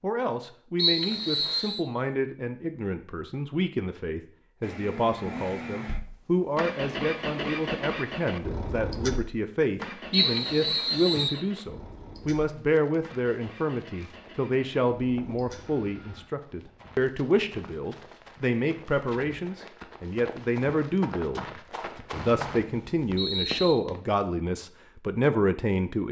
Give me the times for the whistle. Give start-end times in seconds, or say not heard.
0.8-1.9, 10.1-11.4, 22.1-23.8.